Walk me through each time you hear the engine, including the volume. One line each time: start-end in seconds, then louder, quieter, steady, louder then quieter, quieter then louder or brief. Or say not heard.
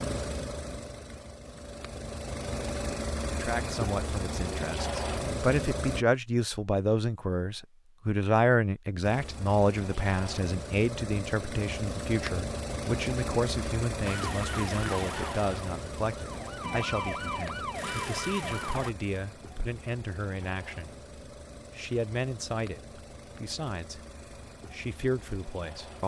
0.0-6.0 louder
9.0-26.0 quieter.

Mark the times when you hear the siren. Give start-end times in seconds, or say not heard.
14.0-18.9.